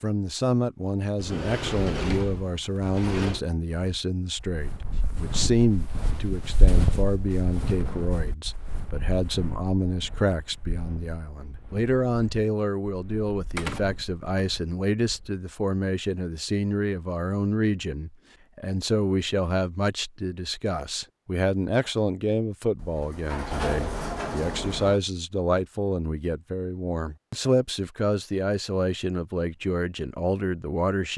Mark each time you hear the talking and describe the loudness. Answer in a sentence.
You can hear the talking from 0.0 to 31.1 s, at a steady volume.